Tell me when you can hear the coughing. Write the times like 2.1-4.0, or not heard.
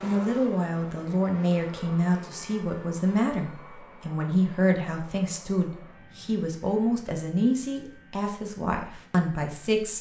not heard.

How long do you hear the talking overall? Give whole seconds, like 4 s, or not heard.
10 s.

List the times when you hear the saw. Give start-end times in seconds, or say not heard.
not heard.